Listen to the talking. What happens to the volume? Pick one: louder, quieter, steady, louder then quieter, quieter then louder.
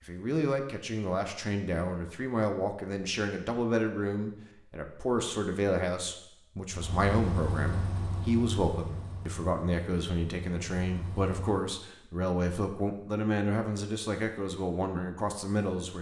steady.